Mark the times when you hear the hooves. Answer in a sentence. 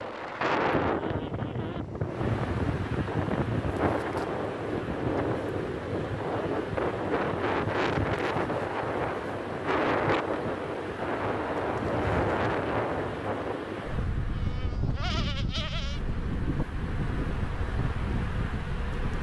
You can't hear the hooves here.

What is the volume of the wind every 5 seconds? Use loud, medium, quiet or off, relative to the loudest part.
loud, loud, loud, medium.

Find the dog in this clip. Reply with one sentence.
You can't hear the dog here.